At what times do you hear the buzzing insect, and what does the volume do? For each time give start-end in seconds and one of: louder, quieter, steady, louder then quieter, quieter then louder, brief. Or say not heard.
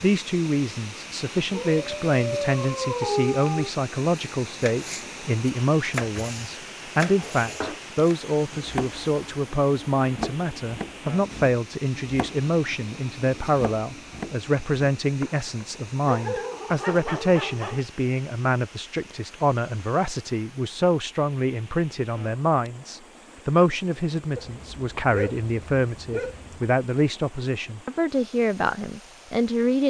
not heard.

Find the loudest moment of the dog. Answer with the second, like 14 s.
3 s.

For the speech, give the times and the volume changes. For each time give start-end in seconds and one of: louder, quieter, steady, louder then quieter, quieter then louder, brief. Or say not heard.
0.0-29.8 steady.